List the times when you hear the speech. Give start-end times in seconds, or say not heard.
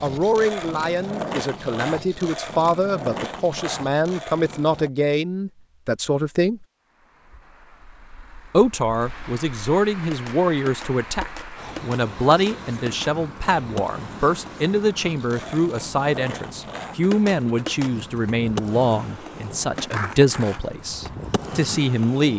0.0-6.7, 8.5-22.3.